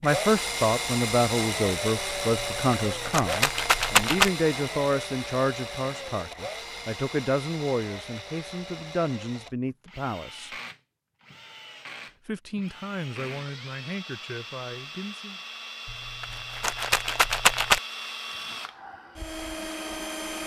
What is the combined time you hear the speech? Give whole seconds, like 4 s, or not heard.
14 s.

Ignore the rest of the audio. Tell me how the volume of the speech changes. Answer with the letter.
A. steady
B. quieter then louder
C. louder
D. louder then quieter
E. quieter
E.